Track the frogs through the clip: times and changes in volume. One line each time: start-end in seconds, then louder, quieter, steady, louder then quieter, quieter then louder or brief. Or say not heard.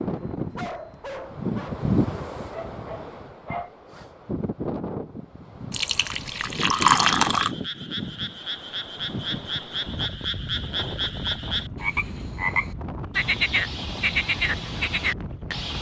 7.3-15.7 louder.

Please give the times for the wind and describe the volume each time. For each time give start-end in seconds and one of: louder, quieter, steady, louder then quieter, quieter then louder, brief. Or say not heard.
0.0-15.7 quieter.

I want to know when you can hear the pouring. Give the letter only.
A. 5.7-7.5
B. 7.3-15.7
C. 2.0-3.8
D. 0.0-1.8
A.